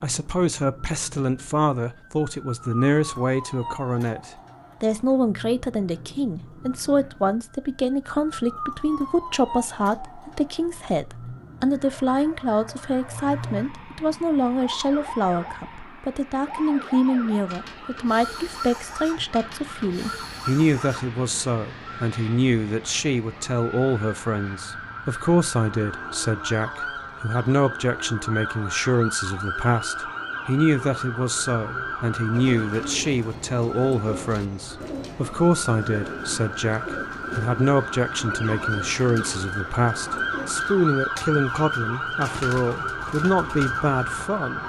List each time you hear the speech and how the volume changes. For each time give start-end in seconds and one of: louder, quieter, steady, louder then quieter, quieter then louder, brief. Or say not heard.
0.0-44.6 steady.